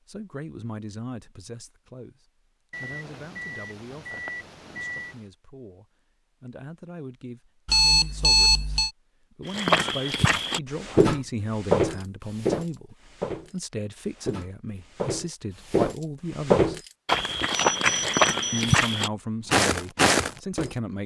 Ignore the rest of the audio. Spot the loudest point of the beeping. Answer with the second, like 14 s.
8 s.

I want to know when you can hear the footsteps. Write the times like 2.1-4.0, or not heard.
9.4-20.8.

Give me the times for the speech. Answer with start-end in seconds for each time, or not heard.
0.1-16.8, 18.5-21.0.